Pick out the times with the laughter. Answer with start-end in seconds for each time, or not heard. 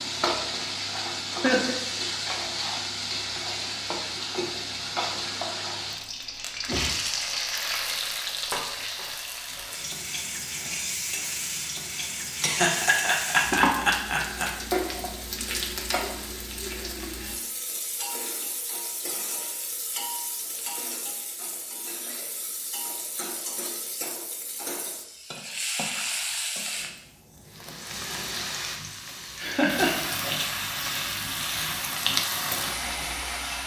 1.4-2.0, 12.4-14.5, 29.4-30.1.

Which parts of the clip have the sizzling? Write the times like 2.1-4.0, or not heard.
0.0-33.6.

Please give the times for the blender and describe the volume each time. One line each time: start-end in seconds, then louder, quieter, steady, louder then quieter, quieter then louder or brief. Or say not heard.
not heard.